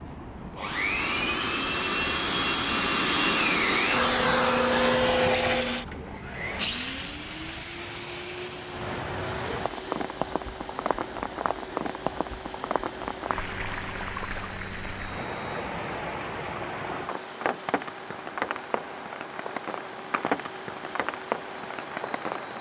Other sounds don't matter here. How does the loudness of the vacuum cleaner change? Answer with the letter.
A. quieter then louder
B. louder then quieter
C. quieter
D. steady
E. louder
C.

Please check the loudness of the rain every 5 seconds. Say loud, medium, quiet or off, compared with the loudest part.
medium, medium, loud, loud, loud.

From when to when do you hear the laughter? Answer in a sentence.
You can't hear the laughter here.